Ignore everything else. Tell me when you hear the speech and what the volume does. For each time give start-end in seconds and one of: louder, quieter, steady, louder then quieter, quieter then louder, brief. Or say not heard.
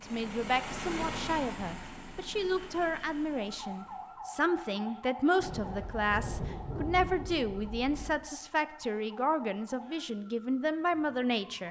0.0-11.6 steady.